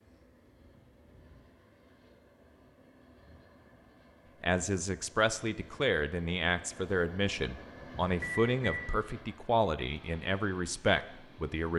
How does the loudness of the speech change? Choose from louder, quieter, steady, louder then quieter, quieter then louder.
steady.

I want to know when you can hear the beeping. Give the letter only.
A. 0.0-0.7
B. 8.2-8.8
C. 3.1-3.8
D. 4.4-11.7
B.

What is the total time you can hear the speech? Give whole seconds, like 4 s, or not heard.
7 s.